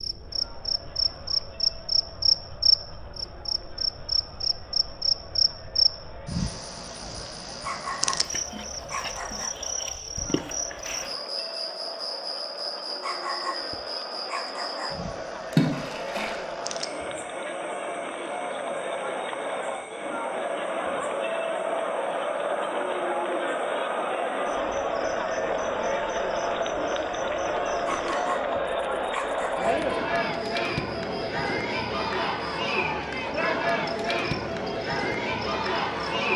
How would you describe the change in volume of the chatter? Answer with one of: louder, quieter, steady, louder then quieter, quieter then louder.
louder.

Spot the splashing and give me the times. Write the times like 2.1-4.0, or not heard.
15.5-16.4.